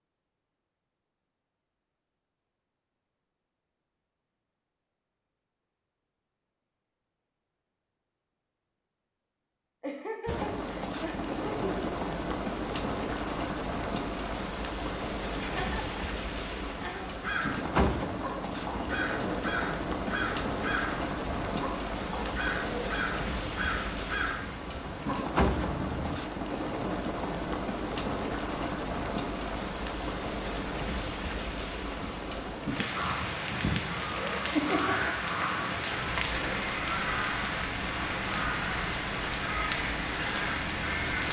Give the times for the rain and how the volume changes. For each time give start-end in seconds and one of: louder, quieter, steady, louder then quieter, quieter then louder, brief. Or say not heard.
10.2-41.2 steady.